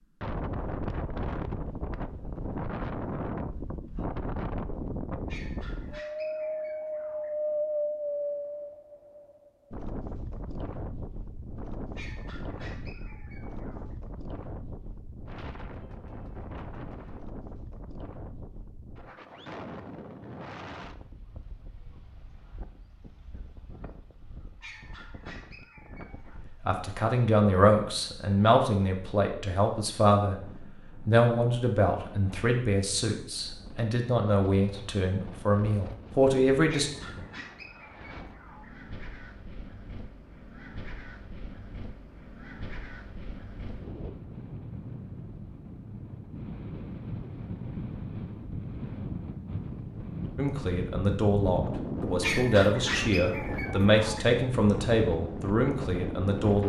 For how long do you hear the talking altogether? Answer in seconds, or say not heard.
16 s.